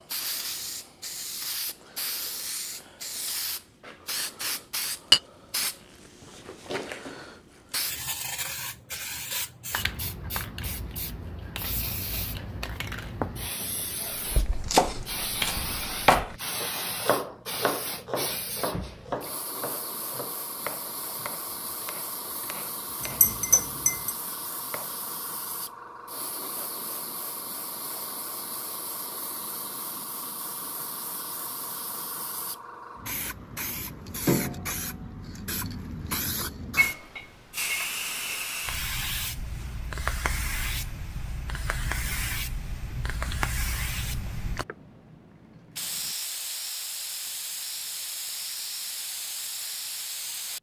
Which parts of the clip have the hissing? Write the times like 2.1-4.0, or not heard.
0.0-50.5.